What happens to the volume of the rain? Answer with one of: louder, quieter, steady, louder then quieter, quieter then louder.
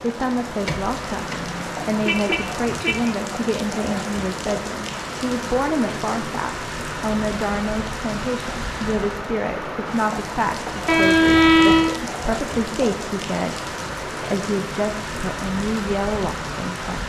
steady.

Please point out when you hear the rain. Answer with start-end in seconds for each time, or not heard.
0.0-17.0.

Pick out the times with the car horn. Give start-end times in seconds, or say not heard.
1.2-3.0, 10.8-11.9.